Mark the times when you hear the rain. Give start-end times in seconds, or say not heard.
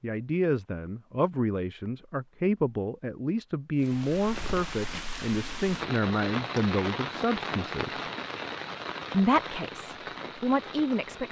3.8-11.2.